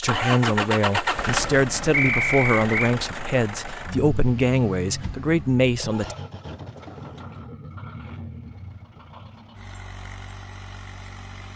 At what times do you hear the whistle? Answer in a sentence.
You can hear the whistle from 1.9 to 3.0 s.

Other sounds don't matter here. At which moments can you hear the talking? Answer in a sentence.
The talking can be heard from 0.0 to 6.2 s.